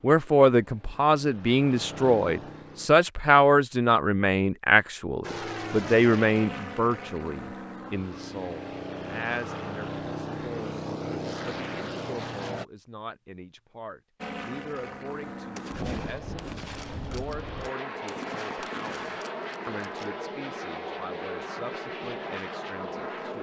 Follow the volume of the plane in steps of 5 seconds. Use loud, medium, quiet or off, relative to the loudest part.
medium, loud, loud, loud, loud.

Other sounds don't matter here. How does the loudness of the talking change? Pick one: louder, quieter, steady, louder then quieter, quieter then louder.
quieter.